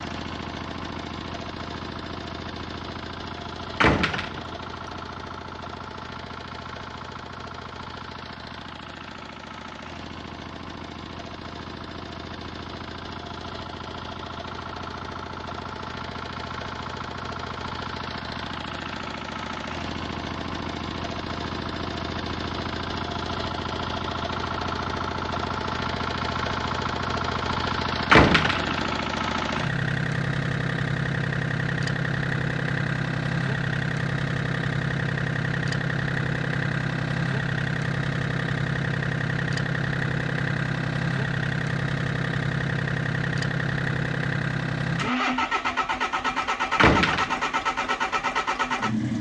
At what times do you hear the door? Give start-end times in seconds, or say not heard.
3.8-4.5, 28.1-28.9, 46.8-47.4.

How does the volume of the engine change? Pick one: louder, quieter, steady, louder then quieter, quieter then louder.
louder.